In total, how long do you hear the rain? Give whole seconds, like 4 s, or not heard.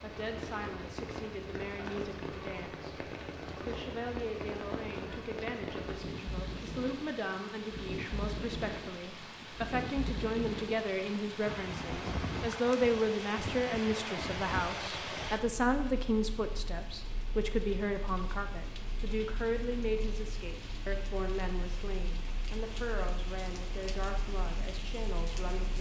26 s.